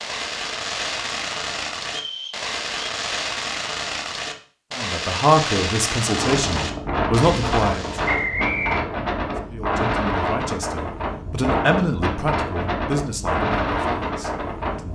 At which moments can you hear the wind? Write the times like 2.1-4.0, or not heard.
6.1-14.9.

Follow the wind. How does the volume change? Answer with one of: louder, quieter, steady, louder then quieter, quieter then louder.
steady.